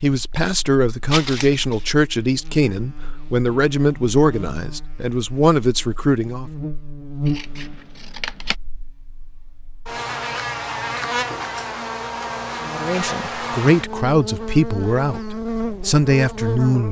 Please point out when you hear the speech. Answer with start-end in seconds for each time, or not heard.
0.0-6.5, 12.7-16.8.